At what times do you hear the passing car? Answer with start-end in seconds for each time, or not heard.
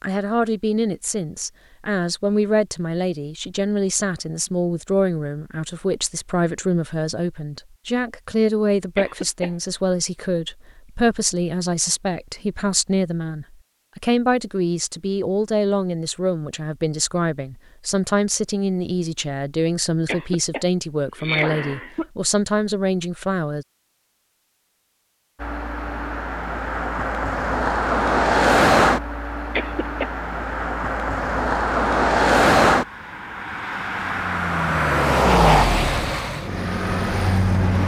25.4-37.8.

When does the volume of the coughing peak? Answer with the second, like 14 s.
21 s.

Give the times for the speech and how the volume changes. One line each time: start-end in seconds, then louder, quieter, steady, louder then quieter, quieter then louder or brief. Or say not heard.
0.0-23.6 steady.